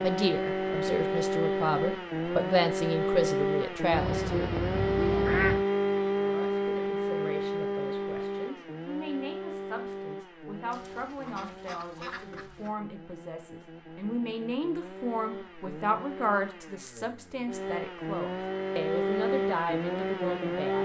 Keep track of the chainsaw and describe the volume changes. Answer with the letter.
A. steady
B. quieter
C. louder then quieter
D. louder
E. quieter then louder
E.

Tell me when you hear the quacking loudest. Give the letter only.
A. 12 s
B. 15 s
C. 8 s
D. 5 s
D.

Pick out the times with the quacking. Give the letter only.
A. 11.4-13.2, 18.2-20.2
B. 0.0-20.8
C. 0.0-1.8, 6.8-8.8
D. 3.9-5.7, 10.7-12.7
D.